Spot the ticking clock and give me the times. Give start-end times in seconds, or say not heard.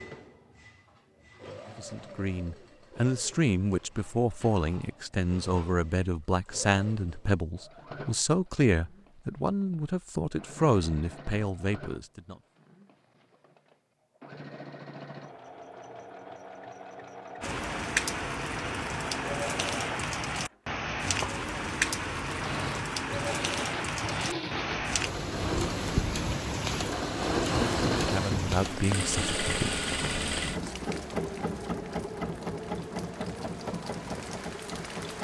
not heard.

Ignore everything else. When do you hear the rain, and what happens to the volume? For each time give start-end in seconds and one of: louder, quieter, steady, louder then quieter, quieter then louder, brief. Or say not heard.
17.4-35.1 quieter.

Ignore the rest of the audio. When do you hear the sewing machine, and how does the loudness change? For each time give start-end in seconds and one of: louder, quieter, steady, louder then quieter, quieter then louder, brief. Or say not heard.
0.0-35.1 louder.